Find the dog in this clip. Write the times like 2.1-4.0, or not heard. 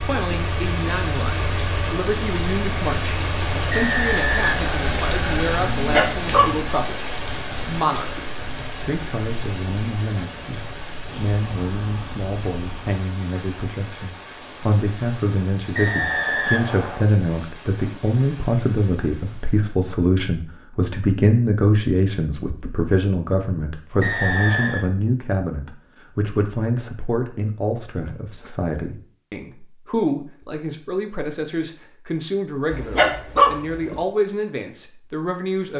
5.8-6.7, 32.7-34.0.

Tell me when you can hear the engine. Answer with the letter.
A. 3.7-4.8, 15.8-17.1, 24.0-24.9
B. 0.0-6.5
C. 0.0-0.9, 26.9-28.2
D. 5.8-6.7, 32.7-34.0
B.